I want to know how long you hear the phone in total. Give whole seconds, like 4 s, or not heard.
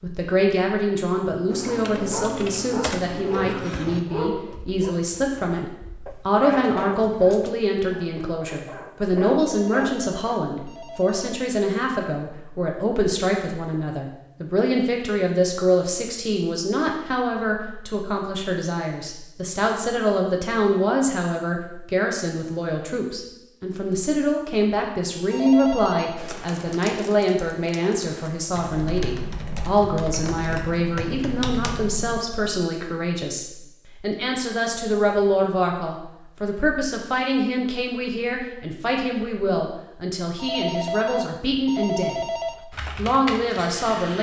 5 s.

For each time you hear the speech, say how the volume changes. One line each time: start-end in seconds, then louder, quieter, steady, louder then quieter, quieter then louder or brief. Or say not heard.
0.0-42.3 steady
43.0-44.1 brief.